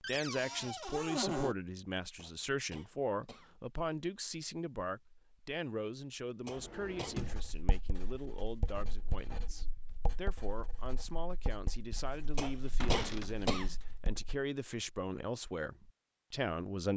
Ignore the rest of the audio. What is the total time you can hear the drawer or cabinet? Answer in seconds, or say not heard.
3 s.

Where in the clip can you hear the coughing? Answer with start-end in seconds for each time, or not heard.
2.1-3.5, 6.5-7.2, 12.3-13.8.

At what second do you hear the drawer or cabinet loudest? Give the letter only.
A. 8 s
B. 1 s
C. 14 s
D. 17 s
B.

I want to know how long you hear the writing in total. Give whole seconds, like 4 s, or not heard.
7 s.